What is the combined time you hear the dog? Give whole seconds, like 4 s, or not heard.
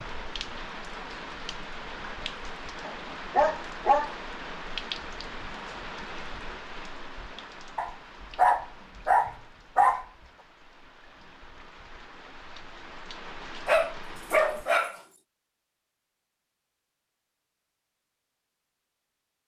5 s.